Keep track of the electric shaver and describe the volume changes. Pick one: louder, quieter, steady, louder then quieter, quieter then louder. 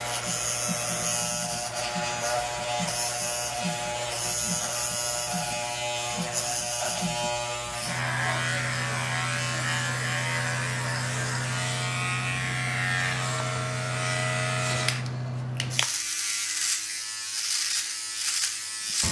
steady.